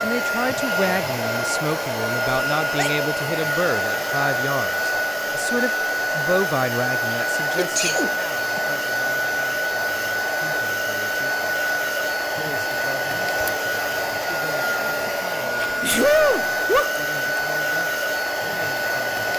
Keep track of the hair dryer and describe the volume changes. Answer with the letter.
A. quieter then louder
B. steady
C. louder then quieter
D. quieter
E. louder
B.